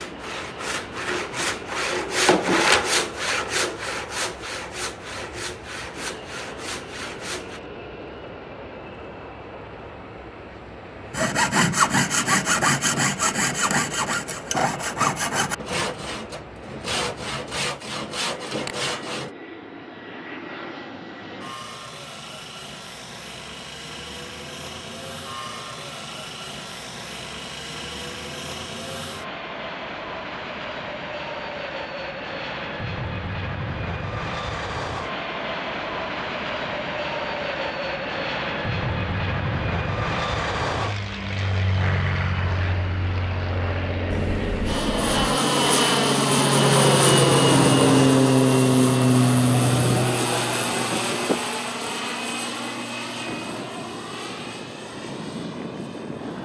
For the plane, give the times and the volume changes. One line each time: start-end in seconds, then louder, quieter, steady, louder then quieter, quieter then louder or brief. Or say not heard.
0.0-56.4 louder.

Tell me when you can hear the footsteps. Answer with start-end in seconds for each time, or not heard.
not heard.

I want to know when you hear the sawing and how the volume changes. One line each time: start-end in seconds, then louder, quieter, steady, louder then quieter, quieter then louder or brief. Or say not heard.
0.0-7.6 louder then quieter
11.1-19.3 quieter.